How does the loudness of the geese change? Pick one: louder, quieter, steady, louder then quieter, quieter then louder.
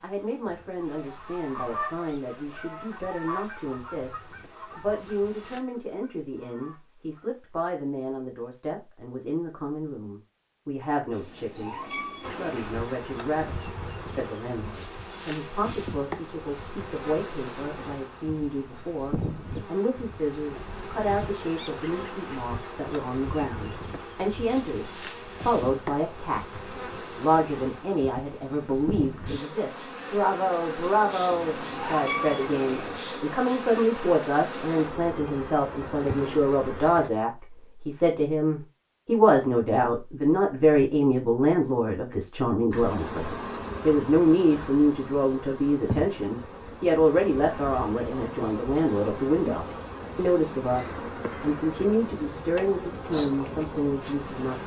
quieter.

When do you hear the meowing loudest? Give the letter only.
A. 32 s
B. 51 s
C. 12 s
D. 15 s
A.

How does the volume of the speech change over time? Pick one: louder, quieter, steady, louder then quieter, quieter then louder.
louder.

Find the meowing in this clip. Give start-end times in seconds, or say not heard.
11.1-12.8, 31.2-33.0.